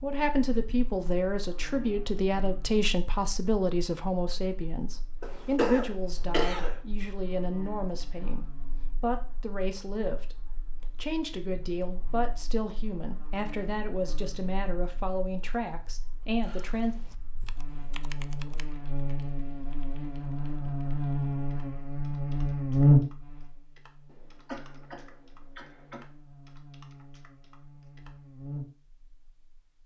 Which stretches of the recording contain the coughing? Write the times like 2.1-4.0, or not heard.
5.2-6.8, 24.1-26.1.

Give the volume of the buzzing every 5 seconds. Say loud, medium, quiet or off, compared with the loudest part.
quiet, quiet, quiet, quiet, loud, quiet.